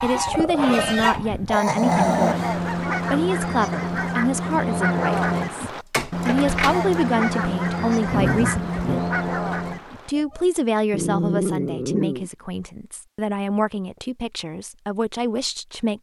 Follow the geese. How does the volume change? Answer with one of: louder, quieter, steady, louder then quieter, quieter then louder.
steady.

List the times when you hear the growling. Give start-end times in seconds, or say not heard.
0.3-2.4, 8.1-9.1, 10.9-12.3.